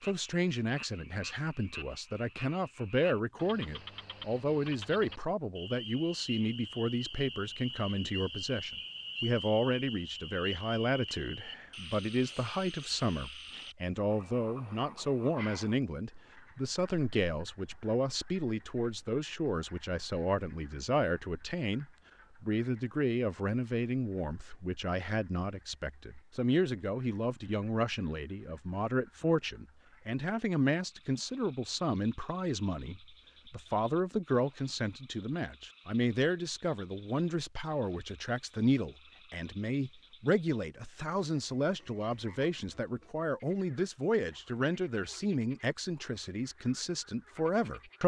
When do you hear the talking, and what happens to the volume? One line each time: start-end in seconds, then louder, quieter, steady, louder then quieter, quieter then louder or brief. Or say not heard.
0.0-48.0 steady.